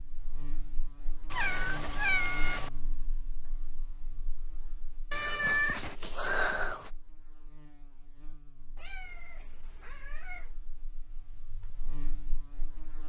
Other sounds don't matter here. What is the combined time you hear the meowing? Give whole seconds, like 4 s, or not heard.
5 s.